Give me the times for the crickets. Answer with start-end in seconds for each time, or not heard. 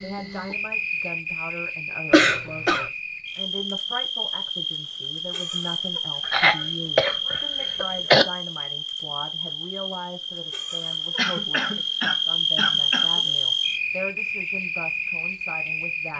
0.0-16.1.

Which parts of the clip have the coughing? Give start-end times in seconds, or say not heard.
2.1-2.9, 6.2-8.2, 11.2-13.1.